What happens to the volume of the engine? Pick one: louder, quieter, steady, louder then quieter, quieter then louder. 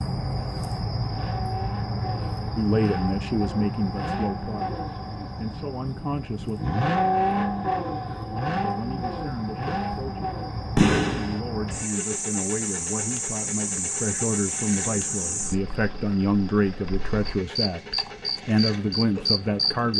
louder then quieter.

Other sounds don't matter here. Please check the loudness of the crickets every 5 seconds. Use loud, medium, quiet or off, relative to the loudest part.
loud, medium, loud, loud.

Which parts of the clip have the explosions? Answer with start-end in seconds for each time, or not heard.
10.8-11.4.